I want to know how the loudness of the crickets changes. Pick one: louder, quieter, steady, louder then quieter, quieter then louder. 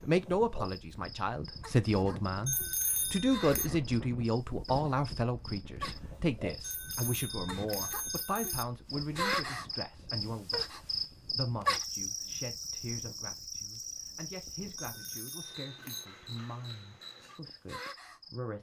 louder then quieter.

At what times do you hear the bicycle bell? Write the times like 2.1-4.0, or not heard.
2.5-3.7, 6.6-8.7, 14.8-16.1.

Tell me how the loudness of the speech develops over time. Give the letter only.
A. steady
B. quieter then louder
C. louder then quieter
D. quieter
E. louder
D.